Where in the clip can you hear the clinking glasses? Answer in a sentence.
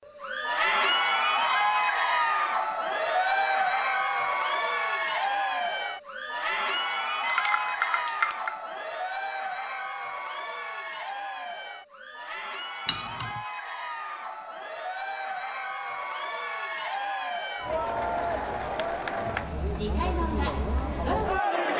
You can hear the clinking glasses from 7.2 to 8.6 s and from 12.8 to 13.4 s.